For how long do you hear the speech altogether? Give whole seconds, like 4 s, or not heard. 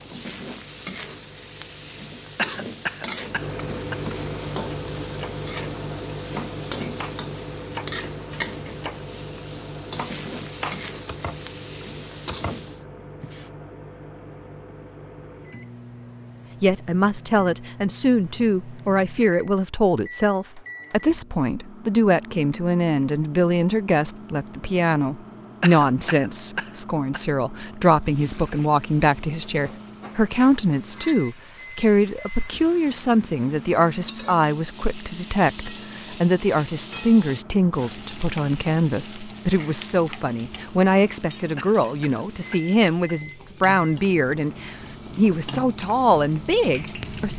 31 s.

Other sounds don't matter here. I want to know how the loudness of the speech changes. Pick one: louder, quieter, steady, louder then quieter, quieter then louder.
steady.